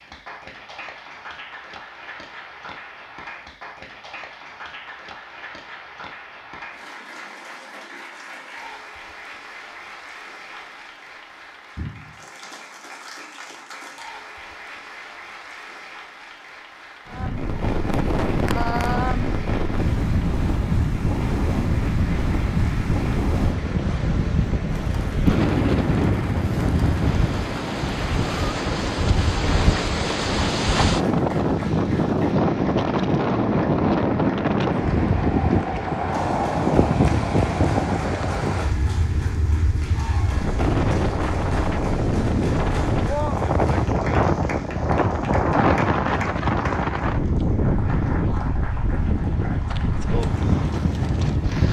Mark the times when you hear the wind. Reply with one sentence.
The wind can be heard from 17.1 to 51.6 s.